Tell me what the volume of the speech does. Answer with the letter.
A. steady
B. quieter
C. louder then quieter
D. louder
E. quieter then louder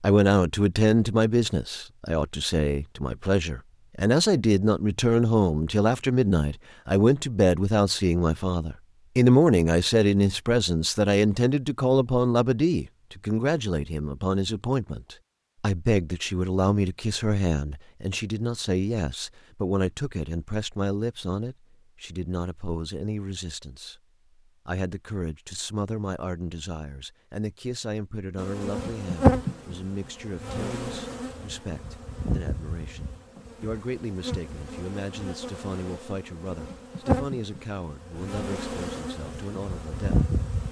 B.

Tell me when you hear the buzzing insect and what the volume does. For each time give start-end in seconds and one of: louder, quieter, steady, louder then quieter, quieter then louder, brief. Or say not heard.
28.4-40.6 quieter then louder.